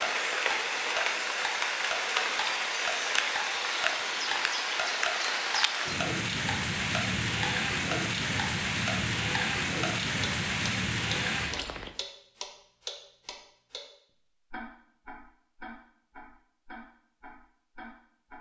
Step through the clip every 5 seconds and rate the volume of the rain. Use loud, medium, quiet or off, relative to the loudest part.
loud, loud, loud, off.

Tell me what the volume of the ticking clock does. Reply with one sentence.
The volume of the ticking clock goes down.